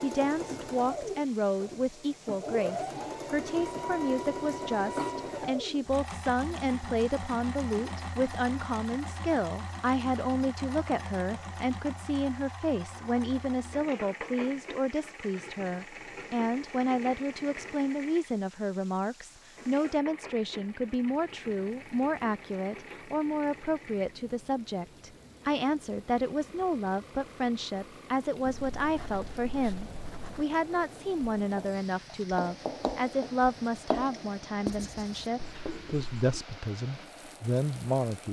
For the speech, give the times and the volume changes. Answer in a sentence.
You can hear the speech from 0.0 to 38.2 s, at a steady volume.